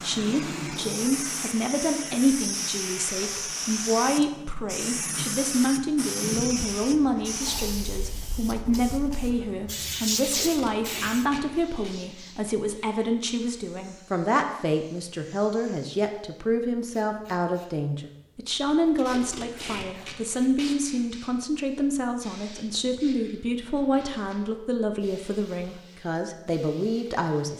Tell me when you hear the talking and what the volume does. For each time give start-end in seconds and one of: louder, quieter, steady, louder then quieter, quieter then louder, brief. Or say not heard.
0.0-27.5 steady.